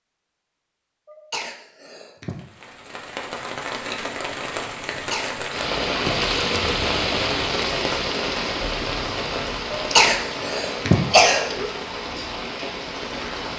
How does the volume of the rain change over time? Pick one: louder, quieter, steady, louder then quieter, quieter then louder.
louder then quieter.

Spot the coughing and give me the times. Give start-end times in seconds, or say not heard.
1.1-2.4, 4.9-6.2, 9.8-11.7.